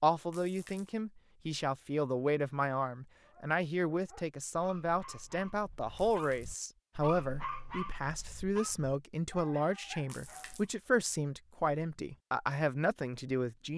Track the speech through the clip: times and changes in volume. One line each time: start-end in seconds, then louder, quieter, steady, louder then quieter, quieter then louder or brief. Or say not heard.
0.0-13.7 steady.